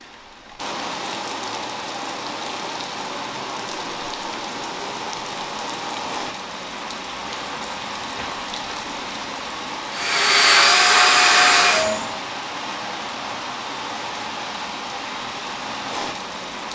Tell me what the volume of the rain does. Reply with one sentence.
The loudness of the rain stays about the same.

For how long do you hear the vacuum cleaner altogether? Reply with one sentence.
The vacuum cleaner can be heard for 2 seconds in total.